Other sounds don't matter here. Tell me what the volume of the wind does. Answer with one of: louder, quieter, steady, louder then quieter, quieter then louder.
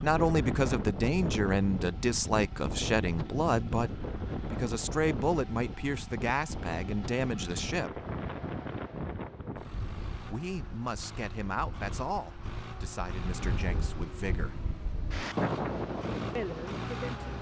quieter then louder.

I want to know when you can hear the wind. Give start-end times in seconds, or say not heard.
0.0-17.3.